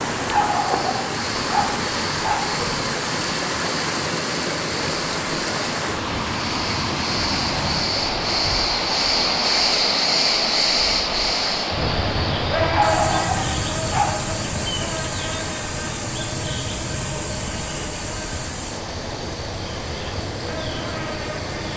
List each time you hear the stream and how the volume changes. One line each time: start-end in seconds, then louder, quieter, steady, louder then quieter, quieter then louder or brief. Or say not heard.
0.0-21.7 quieter.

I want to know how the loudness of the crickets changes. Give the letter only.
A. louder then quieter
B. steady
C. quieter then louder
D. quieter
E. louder
A.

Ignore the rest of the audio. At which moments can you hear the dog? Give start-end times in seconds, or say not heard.
0.3-2.5, 12.7-14.2.